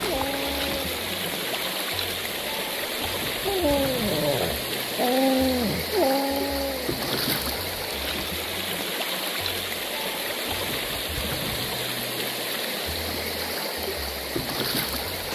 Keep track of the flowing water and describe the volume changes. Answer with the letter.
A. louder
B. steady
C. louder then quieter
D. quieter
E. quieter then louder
B.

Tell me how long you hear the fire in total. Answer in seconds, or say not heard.
not heard.